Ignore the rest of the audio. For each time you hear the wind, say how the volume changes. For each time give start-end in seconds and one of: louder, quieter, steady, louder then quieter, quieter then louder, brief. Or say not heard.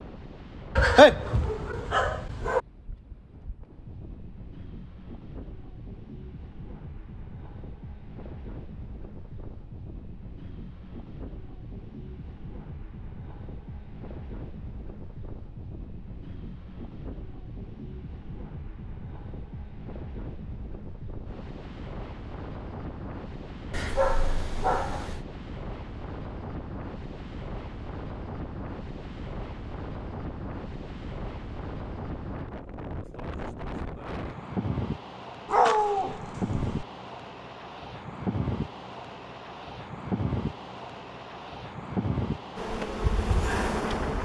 0.0-44.1 louder.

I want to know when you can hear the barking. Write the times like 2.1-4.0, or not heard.
0.8-2.6, 23.7-25.2, 35.5-36.9.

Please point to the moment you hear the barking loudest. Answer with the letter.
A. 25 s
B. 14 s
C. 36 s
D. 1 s
D.